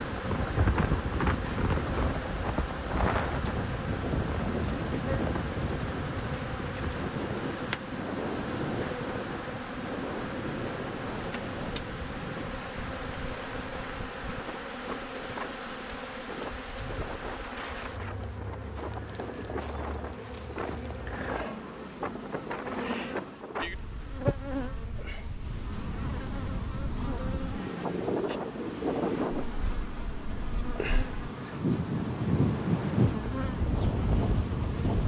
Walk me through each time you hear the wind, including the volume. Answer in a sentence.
You can hear the wind from 0.0 to 35.0 s, getting quieter then louder.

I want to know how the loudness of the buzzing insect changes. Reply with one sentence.
The volume of the buzzing insect stays about the same.